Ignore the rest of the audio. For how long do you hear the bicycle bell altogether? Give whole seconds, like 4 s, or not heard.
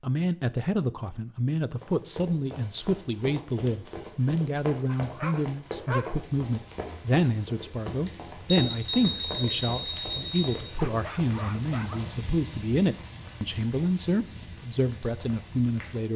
3 s.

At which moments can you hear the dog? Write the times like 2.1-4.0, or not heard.
4.8-6.2, 10.8-12.1.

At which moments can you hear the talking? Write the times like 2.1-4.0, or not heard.
0.0-16.1.